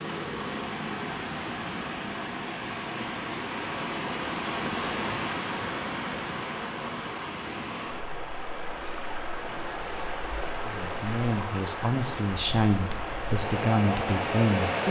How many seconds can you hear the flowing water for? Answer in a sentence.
You can hear the flowing water for 15 seconds altogether.